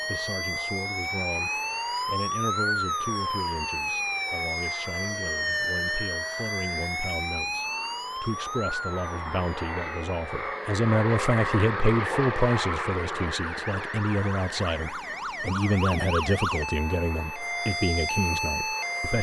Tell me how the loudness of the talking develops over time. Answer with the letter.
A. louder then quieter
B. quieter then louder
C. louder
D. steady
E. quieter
C.